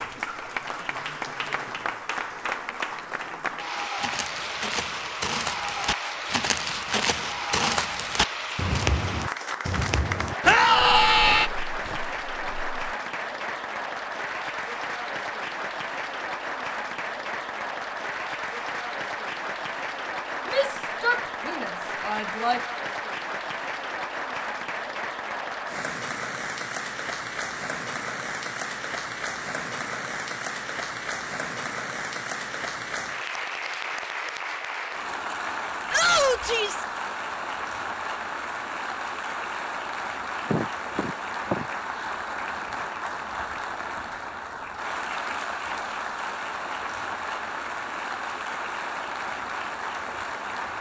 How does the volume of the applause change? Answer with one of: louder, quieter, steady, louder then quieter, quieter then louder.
steady.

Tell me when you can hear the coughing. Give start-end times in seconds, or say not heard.
40.5-41.6.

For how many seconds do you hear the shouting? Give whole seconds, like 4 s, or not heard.
4 s.